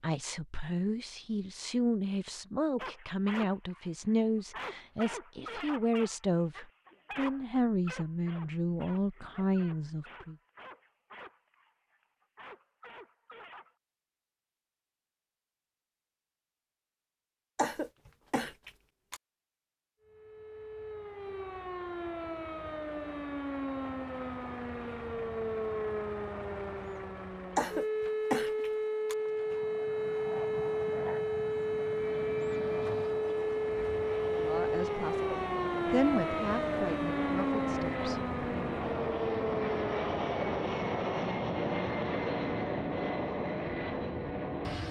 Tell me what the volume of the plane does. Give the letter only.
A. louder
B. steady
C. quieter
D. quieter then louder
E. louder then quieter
A.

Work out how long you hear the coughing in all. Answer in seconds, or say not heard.
3 s.